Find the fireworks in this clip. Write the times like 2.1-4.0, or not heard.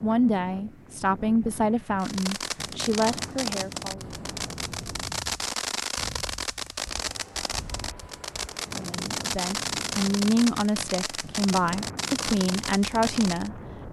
2.0-13.5.